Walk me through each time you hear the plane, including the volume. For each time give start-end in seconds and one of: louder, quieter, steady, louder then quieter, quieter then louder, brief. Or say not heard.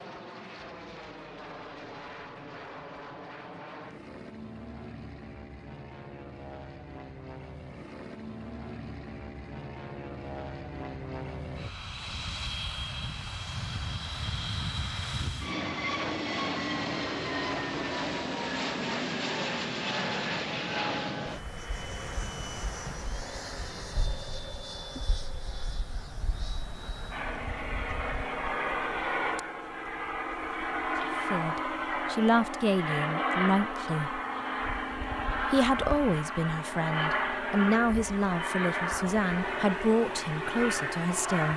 0.0-41.5 louder.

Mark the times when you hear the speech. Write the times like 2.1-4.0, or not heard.
31.3-34.2, 35.5-41.5.